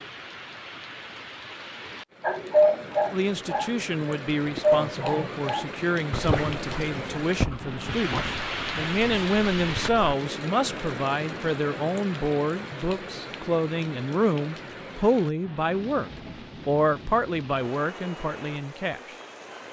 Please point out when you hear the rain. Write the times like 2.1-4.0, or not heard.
0.0-19.6.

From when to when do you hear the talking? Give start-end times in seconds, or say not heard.
3.1-19.1.